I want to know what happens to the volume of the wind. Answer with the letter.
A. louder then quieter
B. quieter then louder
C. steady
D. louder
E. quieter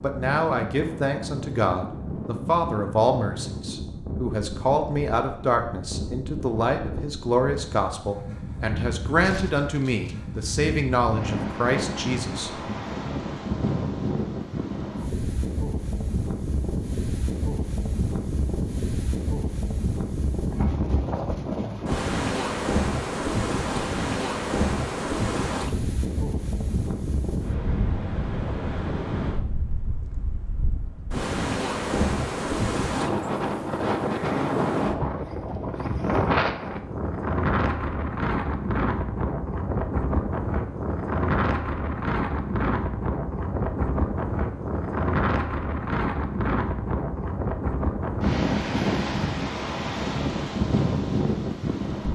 D.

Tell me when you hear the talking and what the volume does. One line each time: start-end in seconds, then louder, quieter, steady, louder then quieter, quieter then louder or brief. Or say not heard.
0.0-12.8 steady.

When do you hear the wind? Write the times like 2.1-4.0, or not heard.
0.0-52.1.